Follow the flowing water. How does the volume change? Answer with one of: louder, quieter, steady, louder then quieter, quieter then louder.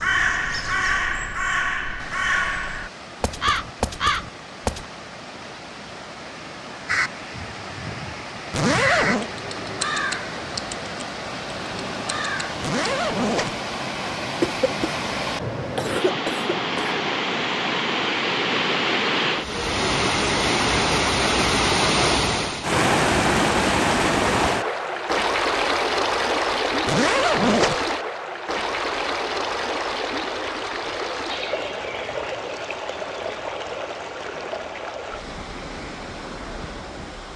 louder then quieter.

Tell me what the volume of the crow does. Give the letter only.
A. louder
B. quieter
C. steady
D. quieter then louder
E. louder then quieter
B.